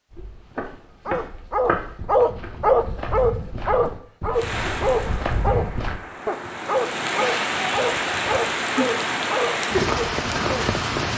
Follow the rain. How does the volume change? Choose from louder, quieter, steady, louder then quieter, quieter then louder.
louder.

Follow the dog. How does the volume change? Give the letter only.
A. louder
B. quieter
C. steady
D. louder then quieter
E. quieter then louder
B.